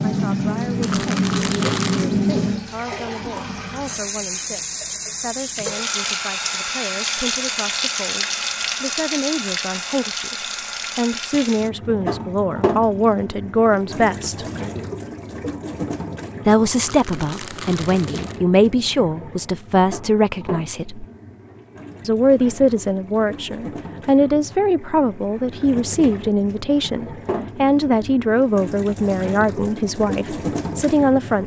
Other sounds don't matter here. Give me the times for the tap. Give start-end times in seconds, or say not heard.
0.0-31.4.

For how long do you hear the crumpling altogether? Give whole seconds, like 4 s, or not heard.
3 s.